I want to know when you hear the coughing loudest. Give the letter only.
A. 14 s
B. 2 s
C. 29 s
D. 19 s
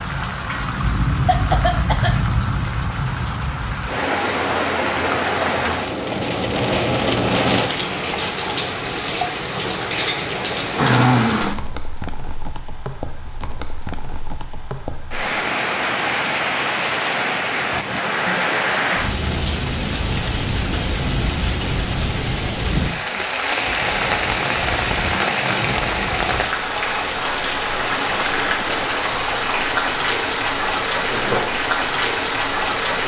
B.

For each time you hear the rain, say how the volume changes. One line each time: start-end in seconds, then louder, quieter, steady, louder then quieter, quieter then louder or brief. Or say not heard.
0.0-33.0 steady.